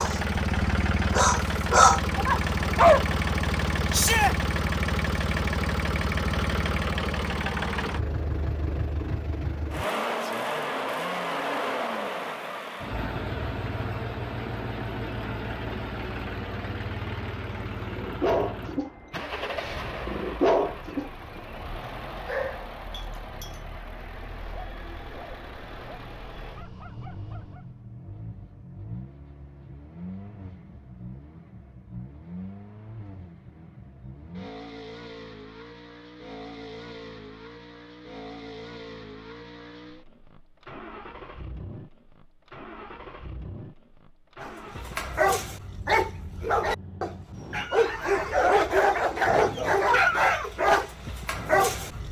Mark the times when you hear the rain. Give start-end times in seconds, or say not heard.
not heard.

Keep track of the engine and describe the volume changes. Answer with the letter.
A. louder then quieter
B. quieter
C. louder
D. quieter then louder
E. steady
B.